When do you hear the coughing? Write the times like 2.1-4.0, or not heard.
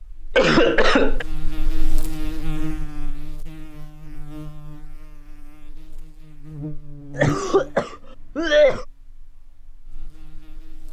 0.3-1.2, 7.2-8.8.